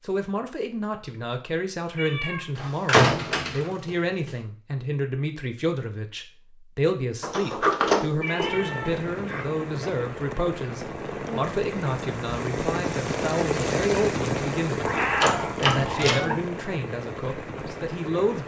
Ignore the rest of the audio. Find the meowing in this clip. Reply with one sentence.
The meowing can be heard from 1.9 to 2.5 s, from 8.2 to 9.7 s and from 14.8 to 16.4 s.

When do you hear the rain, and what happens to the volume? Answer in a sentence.
You can hear the rain from 8.3 to 18.4 s, getting louder then quieter.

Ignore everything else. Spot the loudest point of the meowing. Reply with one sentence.
The volume of the meowing peaks at 15 seconds.